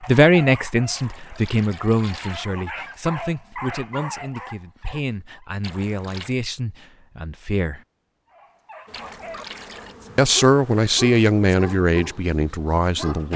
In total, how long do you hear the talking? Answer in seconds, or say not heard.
11 s.